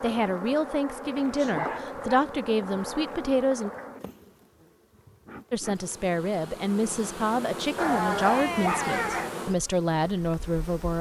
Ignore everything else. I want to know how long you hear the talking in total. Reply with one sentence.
The talking can be heard for 9 seconds in total.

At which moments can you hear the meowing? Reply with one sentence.
The meowing can't be heard in this clip.